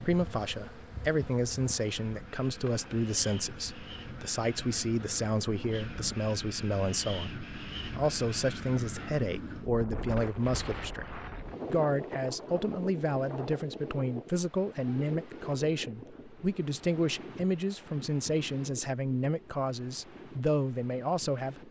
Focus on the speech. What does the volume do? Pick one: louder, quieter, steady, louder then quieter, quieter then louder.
steady.